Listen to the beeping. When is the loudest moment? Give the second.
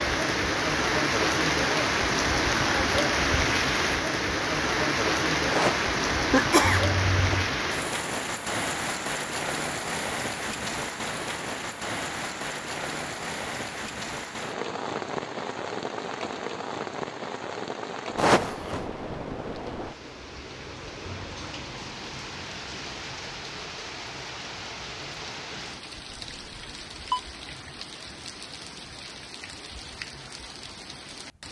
27 s.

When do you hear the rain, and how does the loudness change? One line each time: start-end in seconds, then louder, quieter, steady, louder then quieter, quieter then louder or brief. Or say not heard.
0.0-31.4 quieter.